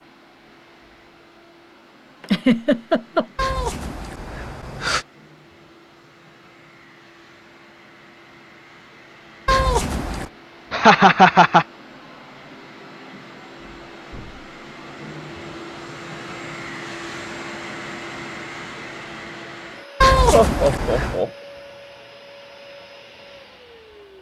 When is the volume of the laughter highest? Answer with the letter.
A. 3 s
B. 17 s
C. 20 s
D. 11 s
D.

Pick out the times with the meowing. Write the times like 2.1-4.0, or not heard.
3.4-5.0, 9.4-10.3, 20.0-21.2.